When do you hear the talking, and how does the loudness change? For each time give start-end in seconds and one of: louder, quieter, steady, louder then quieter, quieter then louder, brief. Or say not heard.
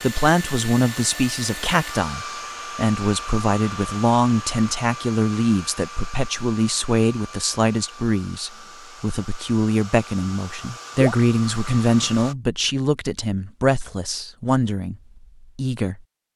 0.0-14.9 steady
15.6-16.0 brief.